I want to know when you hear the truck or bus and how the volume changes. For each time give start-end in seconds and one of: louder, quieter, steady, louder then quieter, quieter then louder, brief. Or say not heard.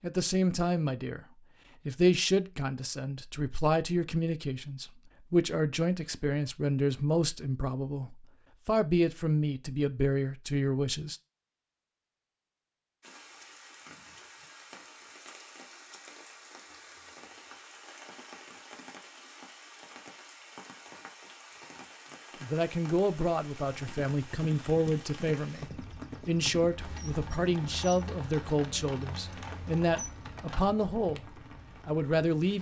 not heard.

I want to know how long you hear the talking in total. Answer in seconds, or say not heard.
20 s.